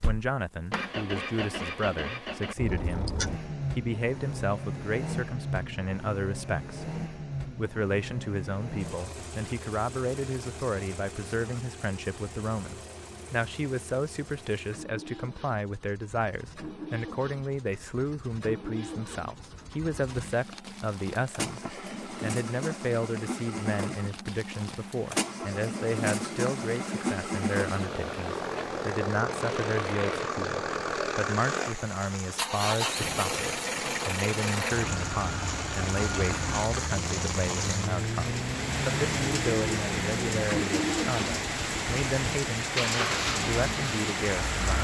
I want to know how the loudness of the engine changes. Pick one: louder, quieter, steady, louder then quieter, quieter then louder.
quieter then louder.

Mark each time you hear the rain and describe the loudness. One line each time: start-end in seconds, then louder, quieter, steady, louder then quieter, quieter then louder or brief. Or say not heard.
20.1-44.7 louder.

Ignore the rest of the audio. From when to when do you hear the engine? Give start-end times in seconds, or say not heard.
0.0-44.7.